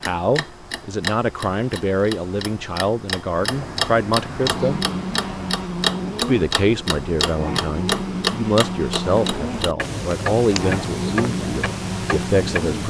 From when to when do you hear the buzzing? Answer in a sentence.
The buzzing can be heard from 4.3 to 12.8 s.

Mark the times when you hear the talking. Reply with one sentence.
You can hear the talking from 0.0 to 4.8 s and from 6.2 to 12.8 s.